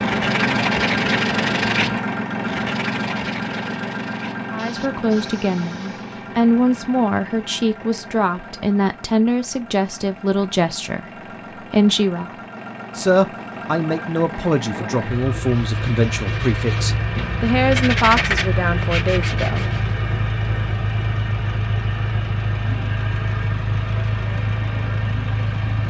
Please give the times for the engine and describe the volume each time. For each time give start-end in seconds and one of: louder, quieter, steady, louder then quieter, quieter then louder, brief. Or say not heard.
0.0-25.8 quieter then louder.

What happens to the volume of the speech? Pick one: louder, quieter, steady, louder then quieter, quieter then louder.
steady.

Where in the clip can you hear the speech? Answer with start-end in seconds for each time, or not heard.
4.5-12.3, 12.9-19.9.